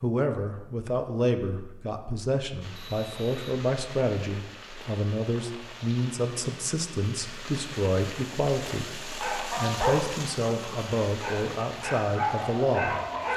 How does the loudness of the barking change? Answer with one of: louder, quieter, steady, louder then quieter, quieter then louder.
quieter then louder.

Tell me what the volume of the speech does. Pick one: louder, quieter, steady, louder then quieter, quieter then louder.
steady.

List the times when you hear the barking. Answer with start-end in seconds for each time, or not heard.
9.2-13.3.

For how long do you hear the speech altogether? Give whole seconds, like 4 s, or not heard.
13 s.